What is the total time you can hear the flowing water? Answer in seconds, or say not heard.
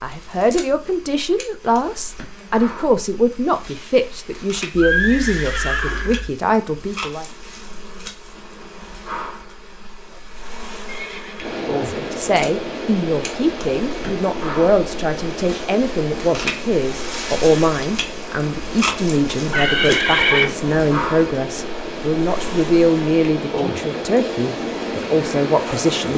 15 s.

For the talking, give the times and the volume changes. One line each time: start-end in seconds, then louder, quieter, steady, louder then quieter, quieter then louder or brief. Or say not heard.
0.0-7.2 steady
11.8-26.1 steady.